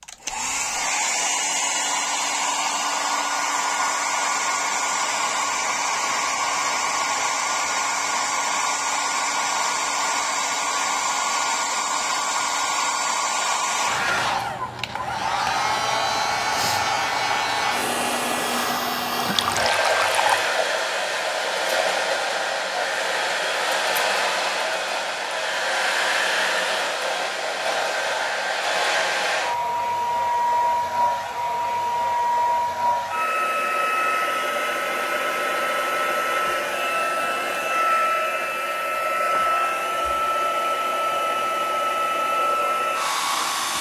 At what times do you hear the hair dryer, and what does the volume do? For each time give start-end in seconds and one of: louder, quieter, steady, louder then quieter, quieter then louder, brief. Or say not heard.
0.0-43.7 steady.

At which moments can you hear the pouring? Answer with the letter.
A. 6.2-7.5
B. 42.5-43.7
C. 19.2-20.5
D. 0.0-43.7
C.